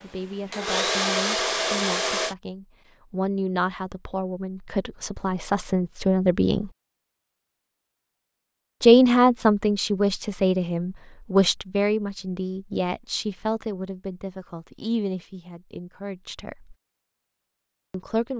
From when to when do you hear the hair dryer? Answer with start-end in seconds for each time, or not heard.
0.0-2.4.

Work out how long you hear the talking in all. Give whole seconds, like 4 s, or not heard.
15 s.